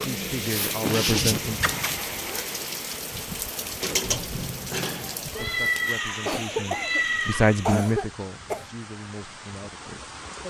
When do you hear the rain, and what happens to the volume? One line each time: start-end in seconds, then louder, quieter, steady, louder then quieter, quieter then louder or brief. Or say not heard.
0.0-10.4 quieter.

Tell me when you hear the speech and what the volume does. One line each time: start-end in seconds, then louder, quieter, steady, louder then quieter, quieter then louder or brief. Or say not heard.
0.0-1.6 brief
5.2-10.4 louder then quieter.